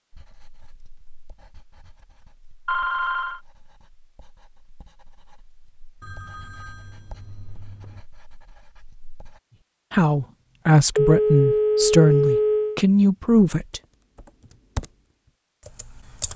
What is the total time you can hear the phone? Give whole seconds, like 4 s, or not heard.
5 s.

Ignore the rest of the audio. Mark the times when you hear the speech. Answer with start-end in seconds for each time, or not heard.
9.9-13.8.